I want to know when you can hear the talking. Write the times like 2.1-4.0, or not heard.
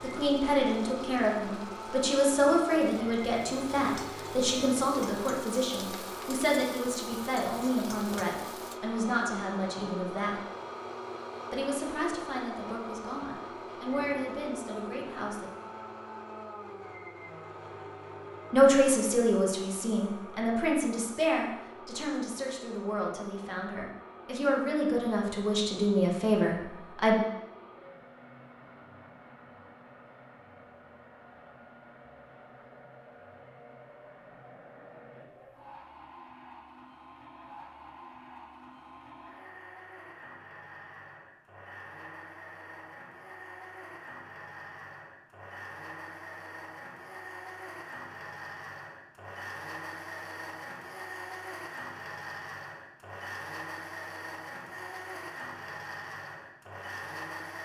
0.0-10.4, 11.5-15.5, 18.5-27.1.